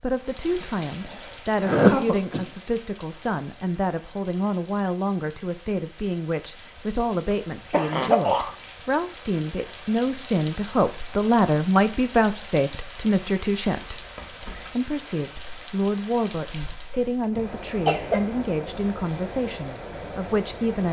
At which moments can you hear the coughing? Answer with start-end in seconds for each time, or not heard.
1.6-2.5, 7.7-8.6, 16.9-18.2.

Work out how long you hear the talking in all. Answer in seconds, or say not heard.
21 s.